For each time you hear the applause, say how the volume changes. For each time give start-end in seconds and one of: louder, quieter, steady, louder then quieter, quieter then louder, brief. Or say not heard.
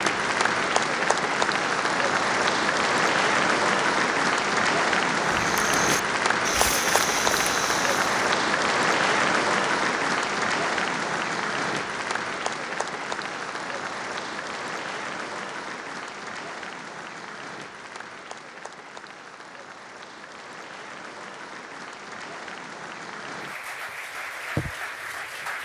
0.0-25.6 quieter.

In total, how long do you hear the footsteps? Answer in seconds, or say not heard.
3 s.